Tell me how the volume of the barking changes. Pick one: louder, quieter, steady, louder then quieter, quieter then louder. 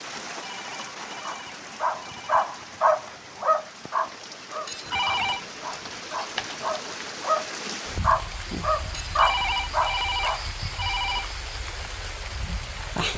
quieter then louder.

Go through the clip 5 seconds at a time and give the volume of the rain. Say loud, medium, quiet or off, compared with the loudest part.
medium, loud, loud.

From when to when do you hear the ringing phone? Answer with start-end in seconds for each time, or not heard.
0.4-2.5, 4.7-5.5, 8.9-11.3.